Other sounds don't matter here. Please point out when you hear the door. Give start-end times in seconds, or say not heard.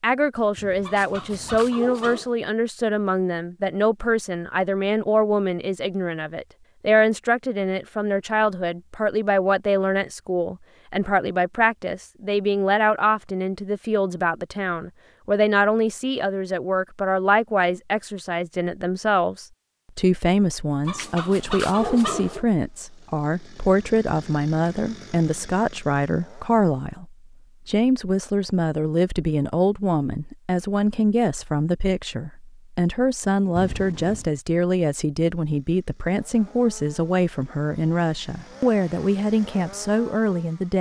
not heard.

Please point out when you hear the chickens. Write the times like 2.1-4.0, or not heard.
0.8-2.3, 20.9-22.4.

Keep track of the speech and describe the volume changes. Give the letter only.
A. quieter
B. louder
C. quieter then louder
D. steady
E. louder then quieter
D.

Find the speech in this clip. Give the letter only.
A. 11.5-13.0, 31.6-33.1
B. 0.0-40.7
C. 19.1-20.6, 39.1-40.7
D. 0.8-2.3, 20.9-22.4
B.